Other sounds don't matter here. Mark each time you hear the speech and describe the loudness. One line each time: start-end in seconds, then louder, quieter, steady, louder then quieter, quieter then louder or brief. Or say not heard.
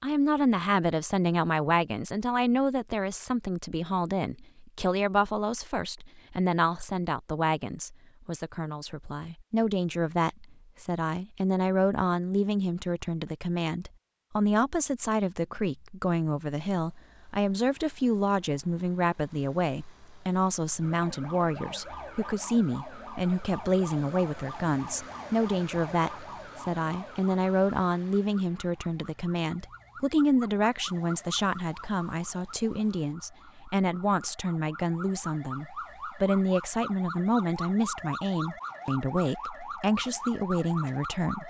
0.0-41.4 steady.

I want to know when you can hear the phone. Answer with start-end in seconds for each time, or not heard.
not heard.